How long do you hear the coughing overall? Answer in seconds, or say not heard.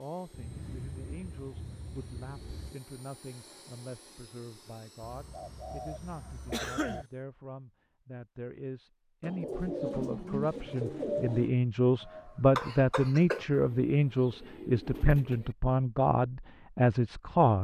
2 s.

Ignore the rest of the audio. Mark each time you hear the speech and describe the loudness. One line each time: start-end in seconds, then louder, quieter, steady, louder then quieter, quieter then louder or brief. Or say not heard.
0.0-17.5 louder.